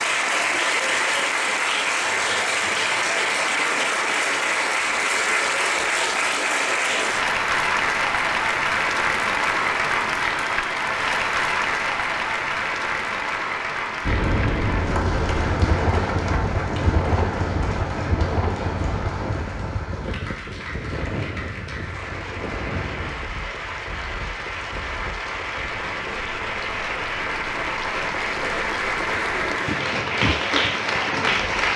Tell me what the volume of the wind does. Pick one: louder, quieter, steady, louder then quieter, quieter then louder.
quieter.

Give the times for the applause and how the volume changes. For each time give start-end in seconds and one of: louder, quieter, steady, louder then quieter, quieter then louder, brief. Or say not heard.
0.0-31.7 quieter then louder.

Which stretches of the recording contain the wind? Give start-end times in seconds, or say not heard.
14.0-31.5.